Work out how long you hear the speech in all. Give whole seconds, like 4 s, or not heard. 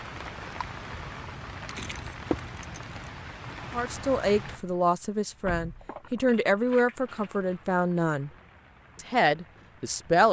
6 s.